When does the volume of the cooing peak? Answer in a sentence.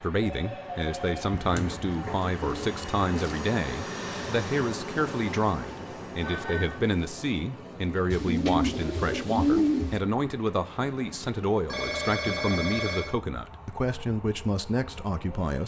The volume of the cooing peaks at 10 seconds.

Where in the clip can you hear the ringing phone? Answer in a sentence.
The ringing phone can be heard from 0.1 to 1.9 s, from 6.2 to 6.8 s and from 11.7 to 13.2 s.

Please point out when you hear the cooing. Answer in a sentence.
The cooing can be heard from 1.5 to 3.4 s and from 8.1 to 10.0 s.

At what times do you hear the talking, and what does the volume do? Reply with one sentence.
You can hear the talking from 0.0 to 15.6 s, at a steady volume.